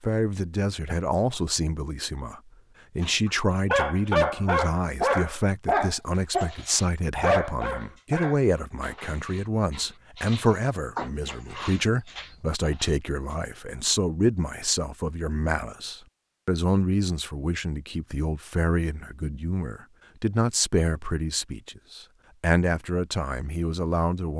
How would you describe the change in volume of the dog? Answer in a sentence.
The volume of the dog goes down.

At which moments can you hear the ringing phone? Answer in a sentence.
You can't hear the ringing phone here.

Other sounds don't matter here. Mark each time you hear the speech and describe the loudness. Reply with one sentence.
The speech can be heard from 0.0 to 24.3 s, at a steady volume.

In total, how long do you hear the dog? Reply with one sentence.
You can hear the dog for 10 seconds altogether.